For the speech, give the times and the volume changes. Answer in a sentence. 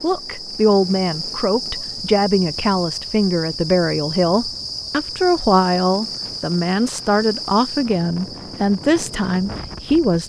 You can hear the speech from 0.0 to 10.2 s, at a steady volume.